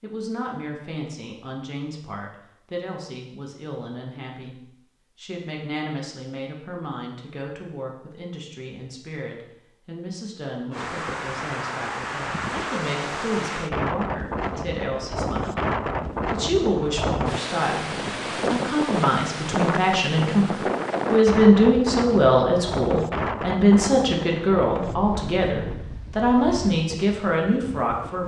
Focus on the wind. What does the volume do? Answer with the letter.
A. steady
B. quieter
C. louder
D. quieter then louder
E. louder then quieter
B.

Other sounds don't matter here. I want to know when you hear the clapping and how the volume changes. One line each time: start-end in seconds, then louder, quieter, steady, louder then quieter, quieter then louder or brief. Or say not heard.
not heard.